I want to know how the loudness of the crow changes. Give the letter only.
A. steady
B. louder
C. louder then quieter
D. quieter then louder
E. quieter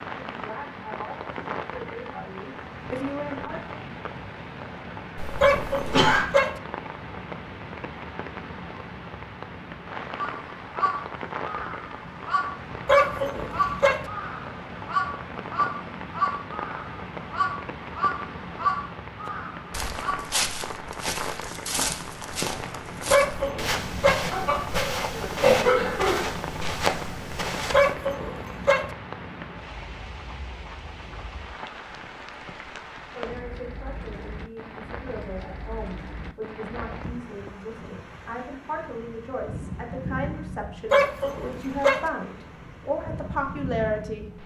A.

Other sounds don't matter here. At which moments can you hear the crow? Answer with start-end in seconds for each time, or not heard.
10.2-20.2.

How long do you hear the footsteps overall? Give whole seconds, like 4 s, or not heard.
8 s.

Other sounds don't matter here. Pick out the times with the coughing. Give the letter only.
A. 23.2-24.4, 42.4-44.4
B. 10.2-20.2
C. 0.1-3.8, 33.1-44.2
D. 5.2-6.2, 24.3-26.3
D.